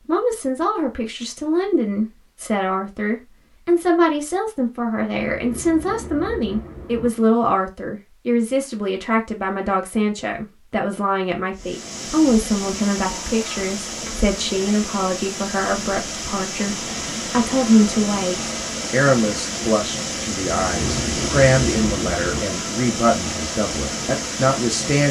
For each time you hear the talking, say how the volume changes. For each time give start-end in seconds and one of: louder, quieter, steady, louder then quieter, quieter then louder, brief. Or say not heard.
0.1-25.0 steady.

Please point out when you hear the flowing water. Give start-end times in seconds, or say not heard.
11.5-25.0.